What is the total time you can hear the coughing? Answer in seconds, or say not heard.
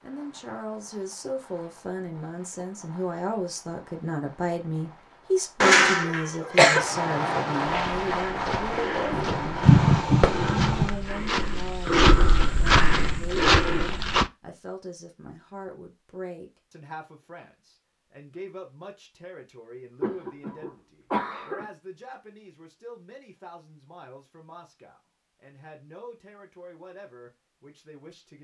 4 s.